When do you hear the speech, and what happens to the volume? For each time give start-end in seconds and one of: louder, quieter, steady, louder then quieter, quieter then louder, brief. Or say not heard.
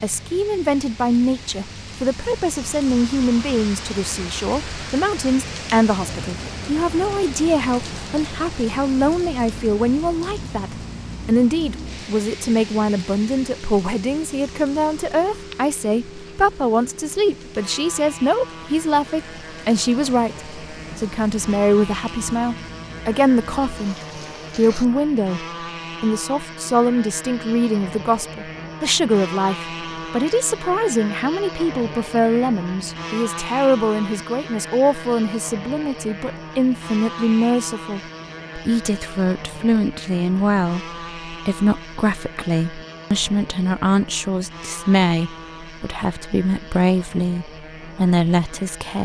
0.0-23.9 steady
24.6-49.0 steady.